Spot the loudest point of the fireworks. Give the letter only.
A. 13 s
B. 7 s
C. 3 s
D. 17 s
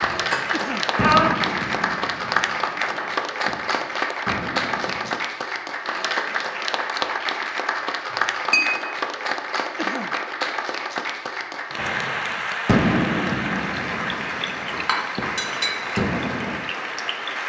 A.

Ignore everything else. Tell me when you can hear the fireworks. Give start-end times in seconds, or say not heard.
0.0-5.1, 11.8-16.6.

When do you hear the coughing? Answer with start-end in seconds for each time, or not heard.
0.5-0.9, 9.8-10.2.